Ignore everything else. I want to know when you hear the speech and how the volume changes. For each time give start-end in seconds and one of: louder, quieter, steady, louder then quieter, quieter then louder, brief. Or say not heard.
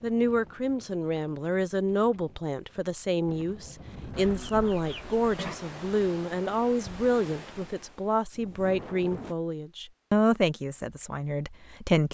0.0-12.0 steady.